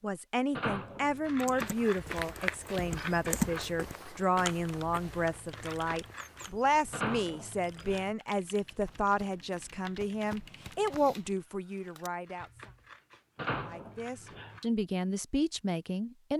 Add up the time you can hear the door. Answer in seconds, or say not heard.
4 s.